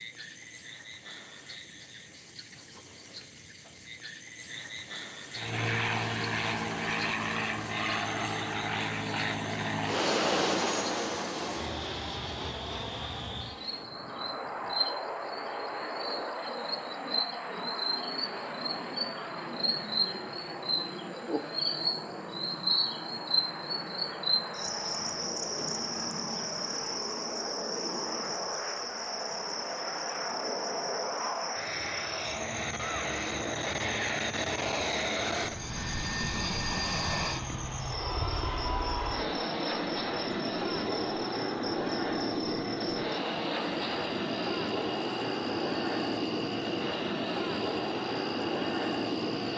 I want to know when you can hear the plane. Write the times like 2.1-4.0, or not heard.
5.3-49.5.